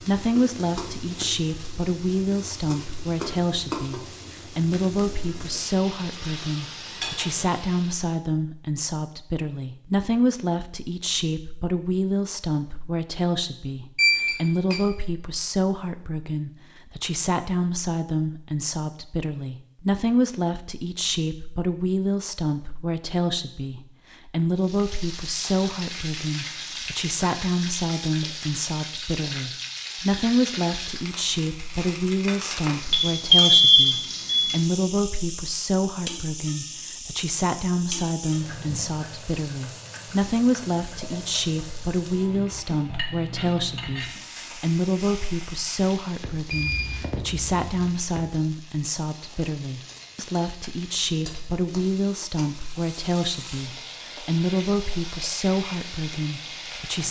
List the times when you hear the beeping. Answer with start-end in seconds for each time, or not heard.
13.9-14.8, 32.9-34.5, 46.5-47.9.